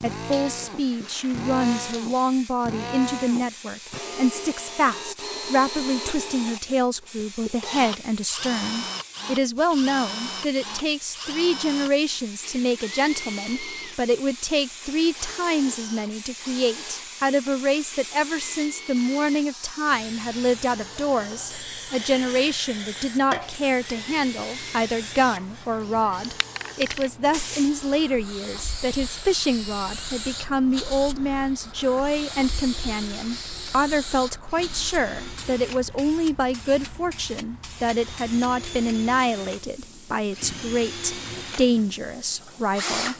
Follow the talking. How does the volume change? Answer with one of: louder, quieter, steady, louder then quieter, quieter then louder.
steady.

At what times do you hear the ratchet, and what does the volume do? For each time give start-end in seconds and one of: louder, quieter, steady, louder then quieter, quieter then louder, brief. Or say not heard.
not heard.